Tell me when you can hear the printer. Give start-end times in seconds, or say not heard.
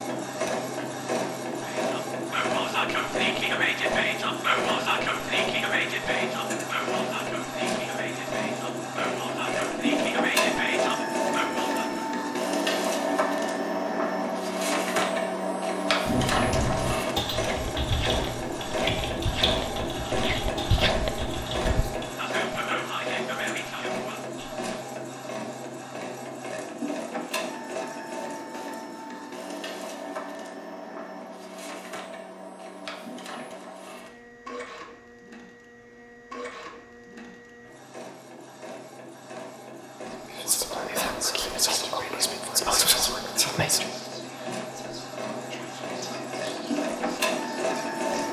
0.0-48.2.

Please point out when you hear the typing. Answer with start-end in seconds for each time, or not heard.
16.1-22.1.